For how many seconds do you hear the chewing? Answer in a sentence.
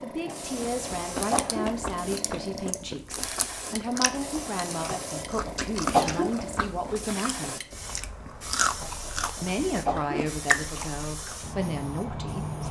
You can hear the chewing for 11 seconds altogether.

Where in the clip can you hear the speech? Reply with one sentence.
You can hear the speech from 0.0 to 7.6 s and from 9.4 to 12.6 s.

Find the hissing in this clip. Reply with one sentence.
You can hear the hissing from 0.0 to 12.6 s.